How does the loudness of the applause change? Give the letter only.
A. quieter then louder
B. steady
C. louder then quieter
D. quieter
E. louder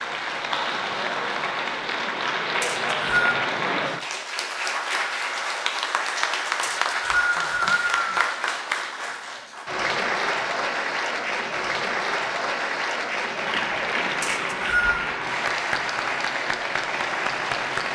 B.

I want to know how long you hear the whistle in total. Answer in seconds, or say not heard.
3 s.